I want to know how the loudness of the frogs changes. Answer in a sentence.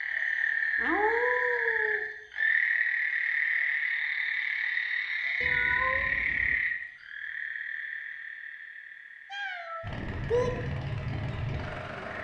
The loudness of the frogs goes down.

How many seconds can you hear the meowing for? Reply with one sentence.
You can hear the meowing for 4 seconds altogether.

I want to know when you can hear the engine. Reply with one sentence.
The engine can be heard from 9.8 to 12.2 s.